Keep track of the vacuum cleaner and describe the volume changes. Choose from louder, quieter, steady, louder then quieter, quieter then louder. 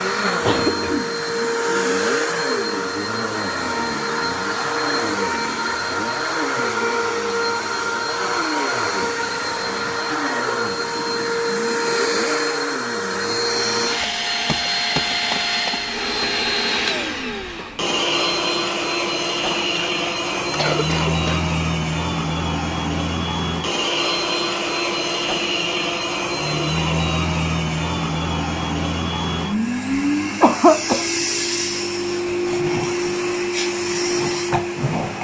steady.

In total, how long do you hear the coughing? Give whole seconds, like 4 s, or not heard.
3 s.